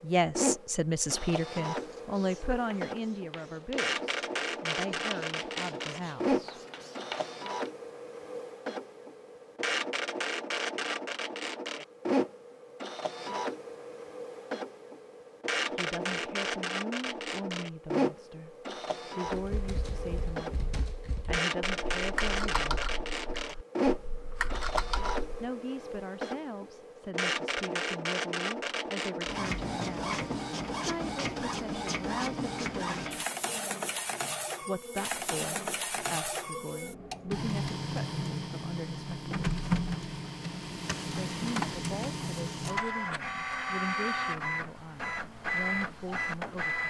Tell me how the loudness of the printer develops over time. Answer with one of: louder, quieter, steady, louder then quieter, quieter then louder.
steady.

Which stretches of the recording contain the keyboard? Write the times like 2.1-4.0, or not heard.
19.2-25.5.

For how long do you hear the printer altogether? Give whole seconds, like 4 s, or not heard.
47 s.